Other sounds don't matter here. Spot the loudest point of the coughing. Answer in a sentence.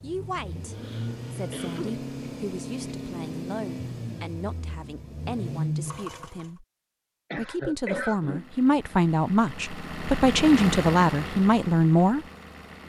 The loudest moment of the coughing is at 8 seconds.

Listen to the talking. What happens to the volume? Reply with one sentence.
The loudness of the talking goes up.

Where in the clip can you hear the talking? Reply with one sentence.
You can hear the talking from 0.0 to 6.7 s and from 7.3 to 12.2 s.